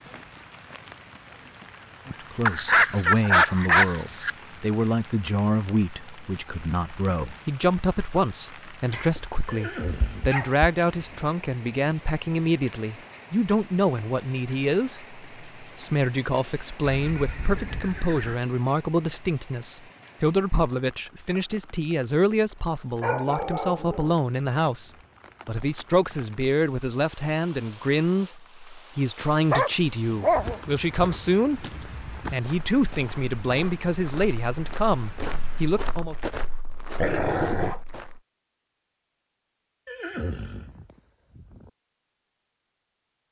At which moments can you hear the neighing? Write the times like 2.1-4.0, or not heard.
9.4-11.3, 16.8-18.4, 39.9-41.7.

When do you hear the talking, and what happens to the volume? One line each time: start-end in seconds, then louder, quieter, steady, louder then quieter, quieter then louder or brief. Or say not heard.
2.0-36.1 steady.